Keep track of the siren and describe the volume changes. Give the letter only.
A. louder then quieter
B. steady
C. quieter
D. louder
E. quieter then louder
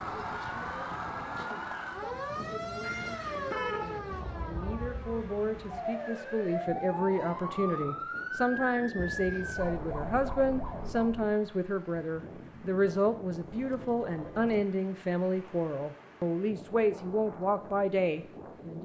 B.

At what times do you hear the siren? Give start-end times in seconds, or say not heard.
0.0-11.3.